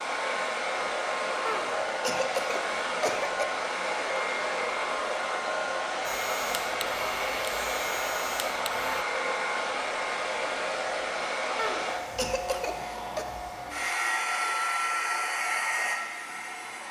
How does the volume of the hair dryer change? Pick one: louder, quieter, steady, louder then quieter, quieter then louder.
steady.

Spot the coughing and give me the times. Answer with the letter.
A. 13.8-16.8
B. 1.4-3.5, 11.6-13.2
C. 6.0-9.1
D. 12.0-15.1
B.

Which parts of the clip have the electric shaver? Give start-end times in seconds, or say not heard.
6.0-9.1.